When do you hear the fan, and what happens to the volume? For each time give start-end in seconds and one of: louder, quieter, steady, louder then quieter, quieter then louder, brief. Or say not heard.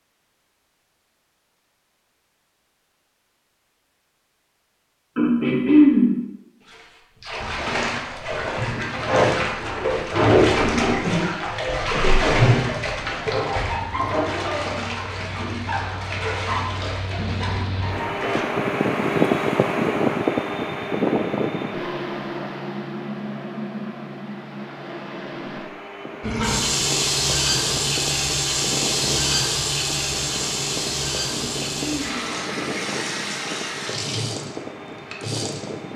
13.7-35.9 louder then quieter.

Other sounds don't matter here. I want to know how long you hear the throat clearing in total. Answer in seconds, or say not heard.
2 s.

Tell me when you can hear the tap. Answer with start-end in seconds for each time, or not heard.
6.7-18.4, 26.2-35.9.